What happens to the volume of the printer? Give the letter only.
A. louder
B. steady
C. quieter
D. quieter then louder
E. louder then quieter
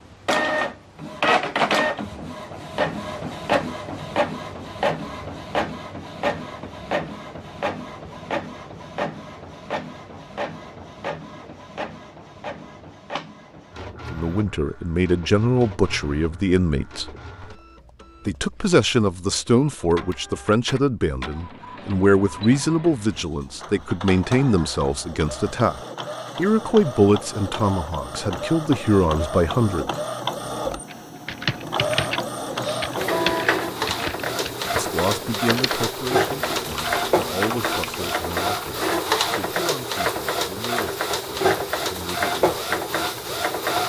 D.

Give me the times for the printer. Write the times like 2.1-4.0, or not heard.
0.1-43.8.